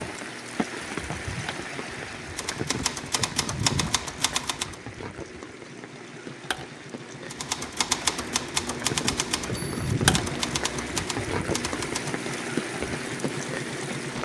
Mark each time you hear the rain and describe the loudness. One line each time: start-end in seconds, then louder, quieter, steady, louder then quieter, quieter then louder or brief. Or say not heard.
0.0-14.2 quieter then louder.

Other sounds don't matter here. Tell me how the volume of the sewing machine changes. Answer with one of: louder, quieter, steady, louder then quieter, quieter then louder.
louder.